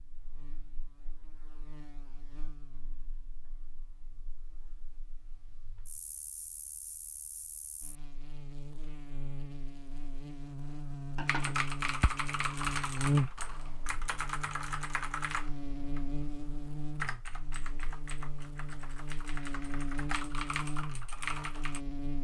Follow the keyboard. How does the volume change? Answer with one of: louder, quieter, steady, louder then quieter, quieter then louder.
quieter then louder.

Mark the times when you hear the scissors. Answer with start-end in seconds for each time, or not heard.
11.2-12.1.